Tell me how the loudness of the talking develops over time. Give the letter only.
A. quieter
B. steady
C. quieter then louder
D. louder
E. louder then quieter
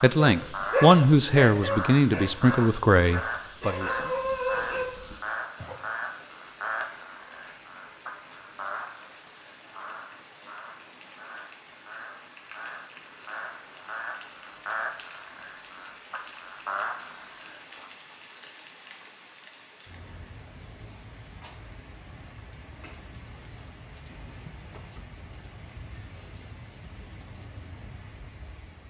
A.